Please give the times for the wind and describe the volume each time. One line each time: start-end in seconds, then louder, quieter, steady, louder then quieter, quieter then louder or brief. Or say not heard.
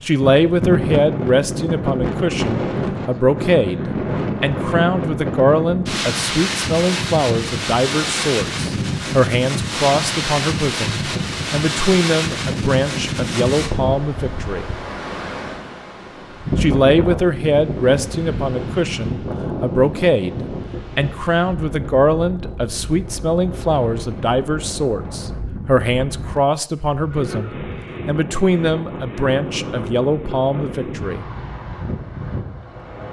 0.0-33.0 quieter.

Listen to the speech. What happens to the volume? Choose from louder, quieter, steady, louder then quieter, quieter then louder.
steady.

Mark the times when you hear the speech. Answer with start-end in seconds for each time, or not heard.
0.0-14.7, 16.6-31.2.